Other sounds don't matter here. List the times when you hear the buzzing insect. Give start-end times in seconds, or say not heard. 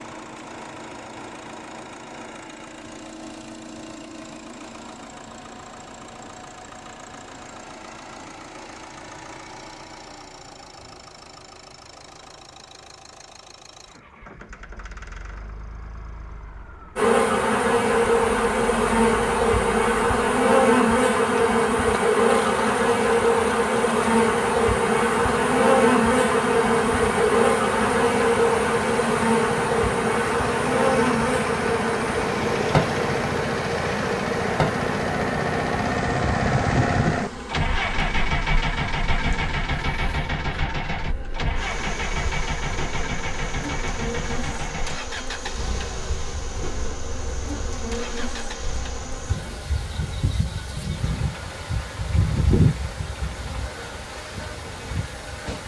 16.9-55.6.